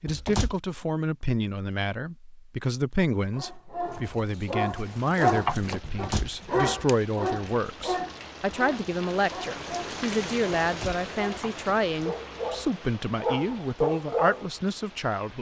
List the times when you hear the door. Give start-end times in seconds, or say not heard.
0.1-0.6, 5.8-6.3, 10.6-11.1.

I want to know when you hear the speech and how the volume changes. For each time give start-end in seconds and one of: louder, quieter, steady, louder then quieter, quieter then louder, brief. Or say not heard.
0.0-15.3 steady.